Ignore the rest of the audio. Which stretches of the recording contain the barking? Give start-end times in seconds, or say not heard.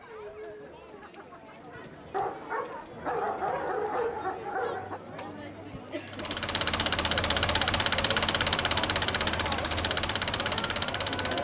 2.1-5.0.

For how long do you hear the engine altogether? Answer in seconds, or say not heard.
5 s.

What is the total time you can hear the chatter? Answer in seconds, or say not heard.
11 s.